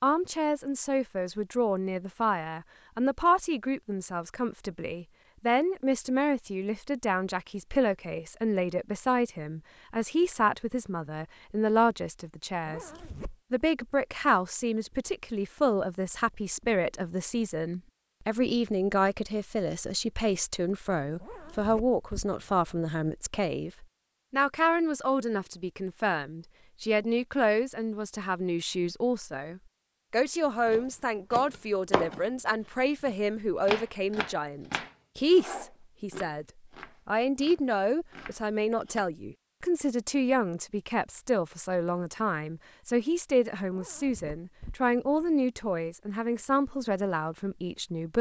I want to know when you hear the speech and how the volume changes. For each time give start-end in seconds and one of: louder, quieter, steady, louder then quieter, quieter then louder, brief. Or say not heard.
0.0-12.9 steady
13.5-36.5 steady
37.0-48.1 steady.